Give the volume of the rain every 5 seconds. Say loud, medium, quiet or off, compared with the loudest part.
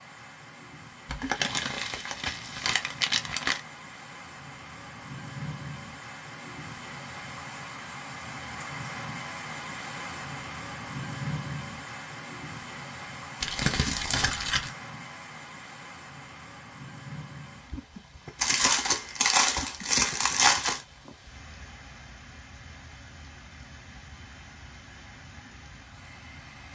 medium, loud, loud, medium, medium, medium.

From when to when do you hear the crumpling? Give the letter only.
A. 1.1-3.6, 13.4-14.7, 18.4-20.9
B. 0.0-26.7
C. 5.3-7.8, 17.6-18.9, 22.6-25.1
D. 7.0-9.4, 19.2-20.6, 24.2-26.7
A.